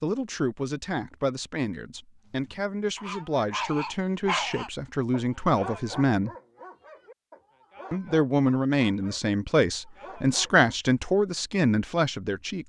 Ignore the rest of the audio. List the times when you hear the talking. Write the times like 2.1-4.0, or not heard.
0.0-6.3, 7.9-12.6.